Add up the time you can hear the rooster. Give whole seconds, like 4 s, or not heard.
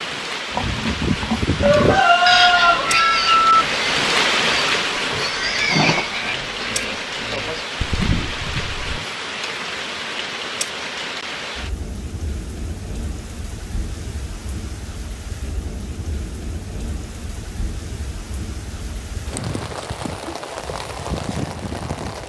2 s.